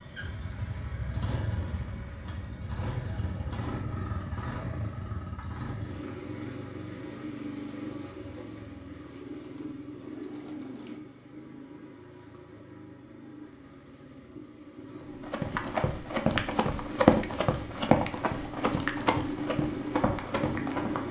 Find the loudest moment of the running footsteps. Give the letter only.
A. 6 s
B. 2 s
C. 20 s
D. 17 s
D.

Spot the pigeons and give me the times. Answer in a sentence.
The pigeons can be heard from 8.9 to 11.0 s.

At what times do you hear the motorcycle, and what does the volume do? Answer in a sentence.
You can hear the motorcycle from 0.0 to 21.0 s, getting quieter then louder.